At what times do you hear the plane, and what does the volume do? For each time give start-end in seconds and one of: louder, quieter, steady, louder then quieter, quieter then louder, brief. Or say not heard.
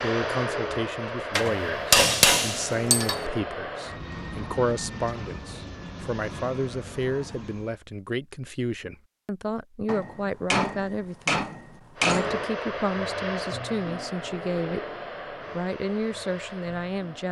0.0-7.8 quieter
11.9-17.2 quieter.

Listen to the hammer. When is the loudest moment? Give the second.
2 s.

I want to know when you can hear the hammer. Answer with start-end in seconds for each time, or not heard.
1.4-3.2, 9.8-12.4.